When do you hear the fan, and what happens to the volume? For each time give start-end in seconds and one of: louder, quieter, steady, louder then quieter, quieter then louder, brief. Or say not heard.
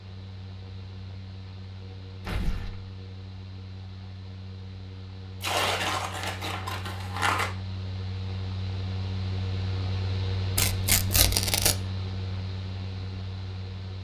0.0-14.0 louder.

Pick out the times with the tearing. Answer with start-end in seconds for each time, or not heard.
2.2-2.8, 5.4-7.5, 10.6-11.8.